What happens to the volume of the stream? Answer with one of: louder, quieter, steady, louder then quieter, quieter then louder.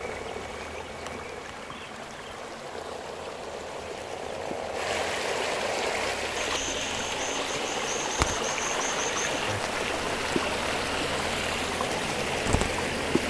louder.